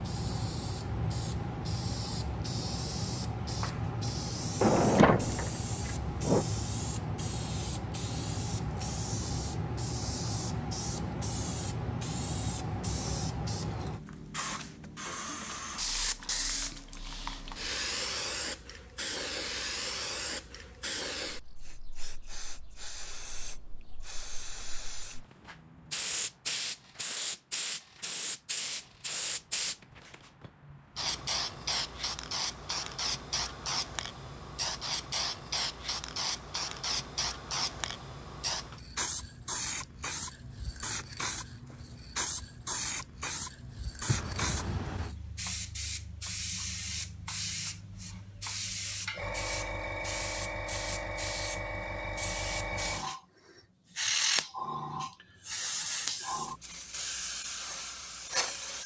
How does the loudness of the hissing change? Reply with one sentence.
The volume of the hissing stays about the same.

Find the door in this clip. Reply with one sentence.
The door can be heard from 4.6 to 6.5 s and from 44.0 to 45.1 s.